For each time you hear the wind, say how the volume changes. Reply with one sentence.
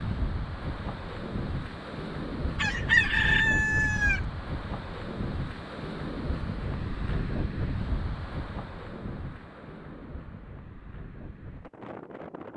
You can hear the wind from 0.0 to 12.5 s, getting quieter.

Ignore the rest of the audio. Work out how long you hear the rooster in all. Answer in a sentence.
The rooster can be heard for 2 seconds in total.